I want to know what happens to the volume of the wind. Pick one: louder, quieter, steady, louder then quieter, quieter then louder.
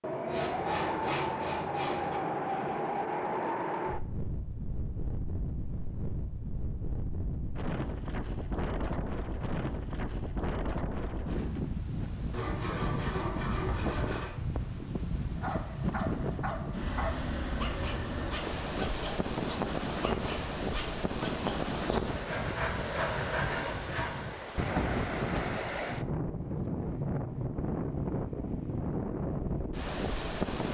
steady.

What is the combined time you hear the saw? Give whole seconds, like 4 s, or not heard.
6 s.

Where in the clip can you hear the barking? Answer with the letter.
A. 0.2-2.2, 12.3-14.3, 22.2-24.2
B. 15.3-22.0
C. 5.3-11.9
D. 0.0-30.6
B.